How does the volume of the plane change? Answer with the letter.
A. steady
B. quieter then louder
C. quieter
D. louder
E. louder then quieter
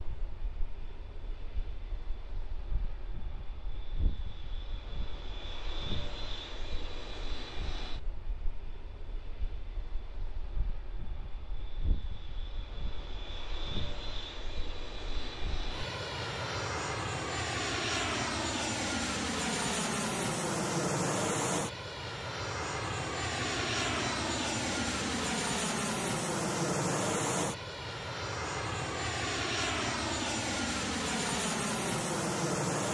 D.